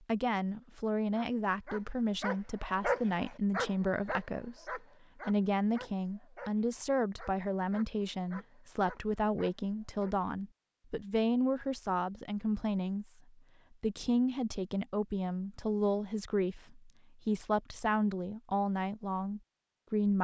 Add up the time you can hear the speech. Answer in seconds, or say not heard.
20 s.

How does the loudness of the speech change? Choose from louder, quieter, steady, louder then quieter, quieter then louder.
steady.